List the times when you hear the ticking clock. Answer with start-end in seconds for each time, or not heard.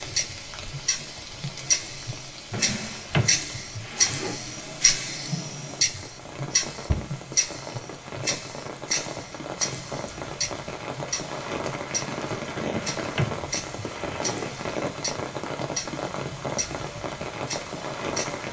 0.0-18.4.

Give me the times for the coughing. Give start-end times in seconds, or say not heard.
not heard.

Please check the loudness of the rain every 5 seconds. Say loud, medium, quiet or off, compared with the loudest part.
medium, medium, loud, loud.